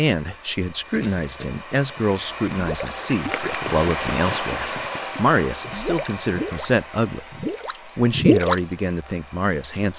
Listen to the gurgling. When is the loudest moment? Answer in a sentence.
The loudest moment of the gurgling is at 8 seconds.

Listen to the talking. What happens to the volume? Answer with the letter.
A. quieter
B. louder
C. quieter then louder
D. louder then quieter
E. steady
E.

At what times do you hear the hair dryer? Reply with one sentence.
You can hear the hair dryer from 0.0 to 9.9 s.